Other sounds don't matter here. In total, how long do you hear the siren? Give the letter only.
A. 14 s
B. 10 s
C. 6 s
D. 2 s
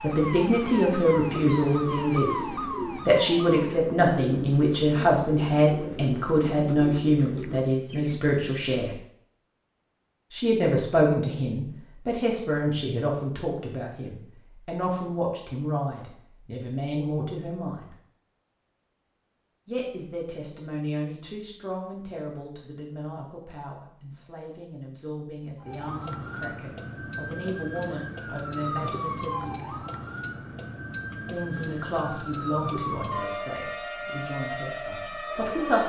A.